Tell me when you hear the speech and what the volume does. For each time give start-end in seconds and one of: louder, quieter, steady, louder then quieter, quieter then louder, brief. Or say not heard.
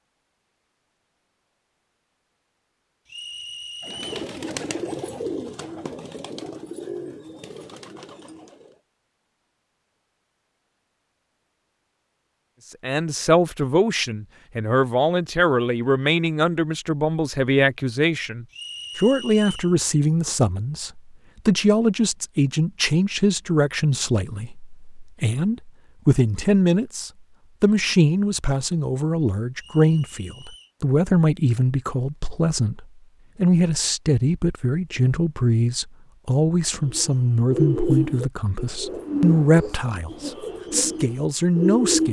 12.8-42.0 steady.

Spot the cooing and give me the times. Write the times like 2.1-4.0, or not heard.
3.8-8.8, 36.8-42.0.